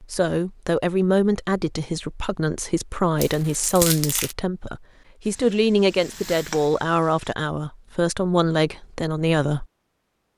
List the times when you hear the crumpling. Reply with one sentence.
The crumpling can be heard from 3.2 to 4.3 s.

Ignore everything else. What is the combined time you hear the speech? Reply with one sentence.
The speech can be heard for 10 seconds in total.